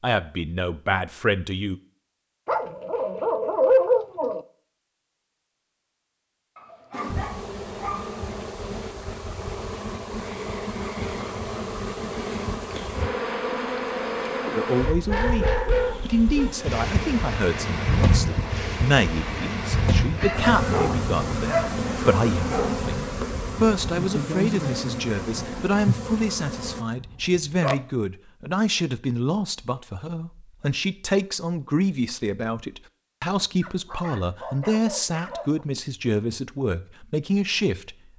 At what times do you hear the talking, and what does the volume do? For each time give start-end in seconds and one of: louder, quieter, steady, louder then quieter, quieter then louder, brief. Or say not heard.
0.0-1.8 brief
14.6-38.0 steady.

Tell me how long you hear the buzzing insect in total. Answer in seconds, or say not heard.
20 s.